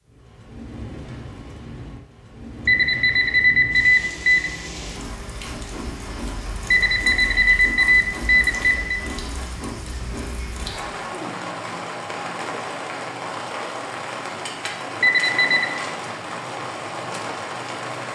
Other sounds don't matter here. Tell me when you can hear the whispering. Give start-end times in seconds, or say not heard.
not heard.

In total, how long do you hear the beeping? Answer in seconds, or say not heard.
5 s.